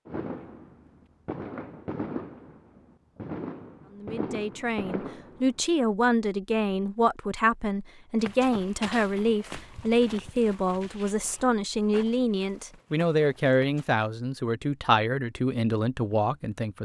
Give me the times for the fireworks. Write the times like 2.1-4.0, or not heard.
0.1-5.6.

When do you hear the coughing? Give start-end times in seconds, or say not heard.
not heard.